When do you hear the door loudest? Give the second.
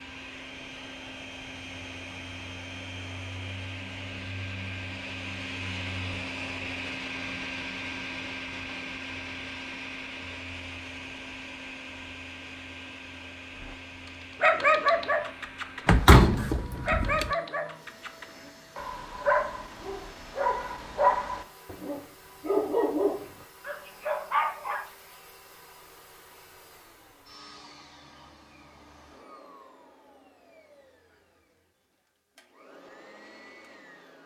16 s.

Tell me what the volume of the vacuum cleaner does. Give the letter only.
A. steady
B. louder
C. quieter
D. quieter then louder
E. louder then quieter
C.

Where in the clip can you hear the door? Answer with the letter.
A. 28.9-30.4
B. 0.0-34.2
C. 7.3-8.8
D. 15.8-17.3
D.